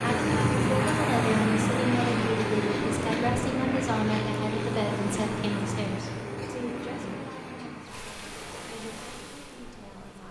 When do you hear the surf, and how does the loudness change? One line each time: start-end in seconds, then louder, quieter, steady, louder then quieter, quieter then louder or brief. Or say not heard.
0.0-10.2 quieter.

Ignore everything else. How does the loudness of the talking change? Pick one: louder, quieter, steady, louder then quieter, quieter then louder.
quieter.